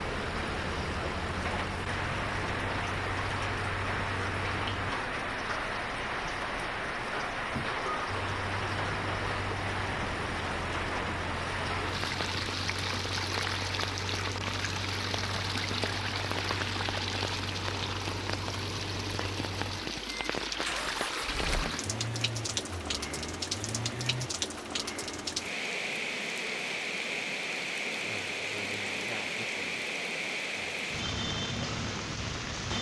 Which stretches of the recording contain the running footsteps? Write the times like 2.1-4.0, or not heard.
not heard.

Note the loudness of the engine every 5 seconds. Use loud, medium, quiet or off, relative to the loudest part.
loud, loud, loud, loud, loud, off, off.